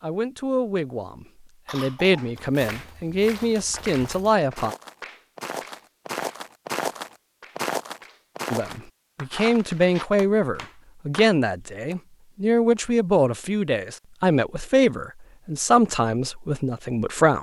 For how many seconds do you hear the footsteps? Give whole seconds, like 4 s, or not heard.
8 s.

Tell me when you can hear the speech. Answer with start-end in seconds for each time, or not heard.
0.0-4.8, 8.5-17.3.